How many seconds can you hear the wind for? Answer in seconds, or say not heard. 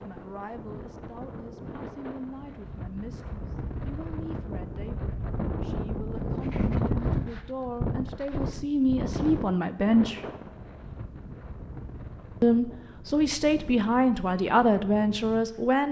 16 s.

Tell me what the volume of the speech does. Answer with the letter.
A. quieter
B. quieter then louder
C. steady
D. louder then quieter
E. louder
E.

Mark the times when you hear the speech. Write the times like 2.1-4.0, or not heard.
0.0-10.2, 12.4-15.8.